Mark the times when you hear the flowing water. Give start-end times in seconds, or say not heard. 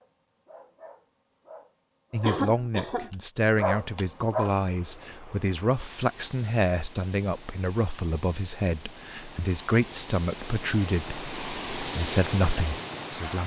4.5-13.4.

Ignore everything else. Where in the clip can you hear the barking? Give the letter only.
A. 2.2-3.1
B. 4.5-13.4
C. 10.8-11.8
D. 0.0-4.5
D.